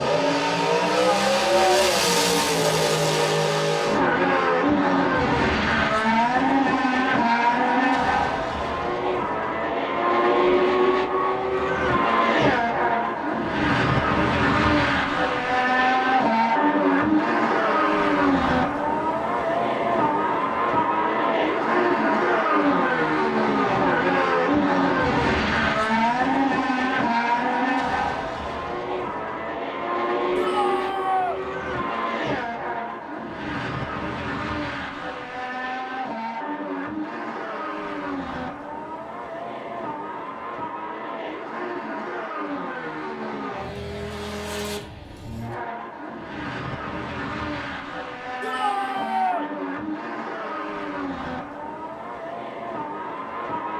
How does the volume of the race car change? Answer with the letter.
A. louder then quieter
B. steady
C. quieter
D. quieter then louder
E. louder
C.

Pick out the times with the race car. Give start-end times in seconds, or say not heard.
0.0-53.7.